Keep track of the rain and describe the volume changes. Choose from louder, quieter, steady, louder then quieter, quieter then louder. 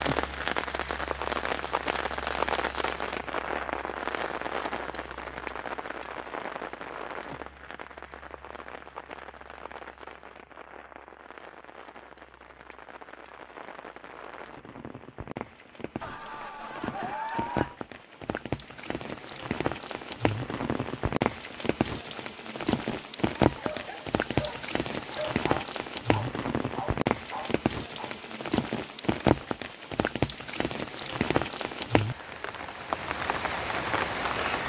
quieter then louder.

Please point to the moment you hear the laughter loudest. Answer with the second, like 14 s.
17 s.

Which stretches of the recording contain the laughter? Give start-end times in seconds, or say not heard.
16.0-17.8.